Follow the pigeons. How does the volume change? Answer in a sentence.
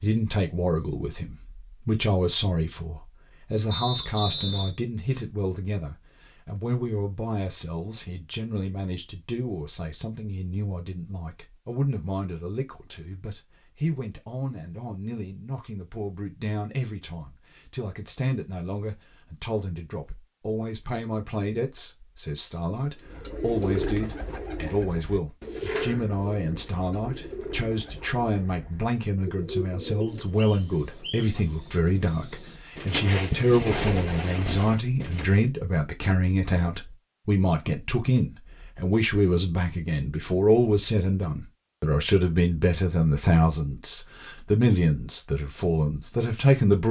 The loudness of the pigeons goes down, then up.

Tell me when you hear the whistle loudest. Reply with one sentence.
The loudest moment of the whistle is at 4 seconds.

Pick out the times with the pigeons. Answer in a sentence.
You can hear the pigeons from 23.1 to 35.4 s.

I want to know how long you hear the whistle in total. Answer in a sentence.
The whistle can be heard for 2 seconds in total.